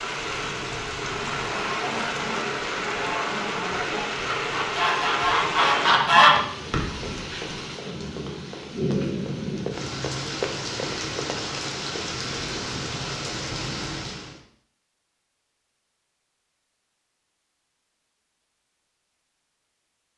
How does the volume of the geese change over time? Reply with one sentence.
The volume of the geese goes up.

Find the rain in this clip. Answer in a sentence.
You can hear the rain from 0.0 to 14.4 s.